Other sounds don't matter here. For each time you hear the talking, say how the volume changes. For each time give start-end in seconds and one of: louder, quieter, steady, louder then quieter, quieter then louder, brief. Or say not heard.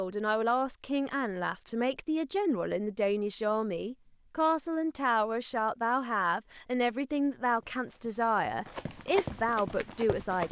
0.0-10.4 steady.